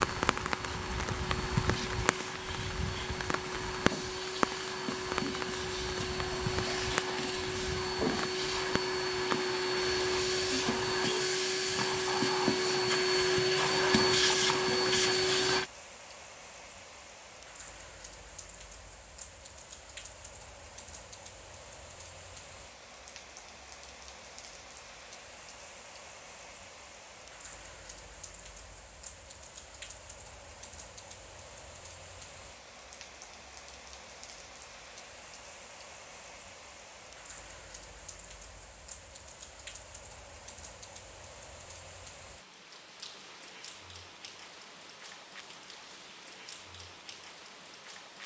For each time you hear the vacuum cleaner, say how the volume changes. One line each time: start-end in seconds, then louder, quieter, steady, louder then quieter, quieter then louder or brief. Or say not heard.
0.0-15.7 louder.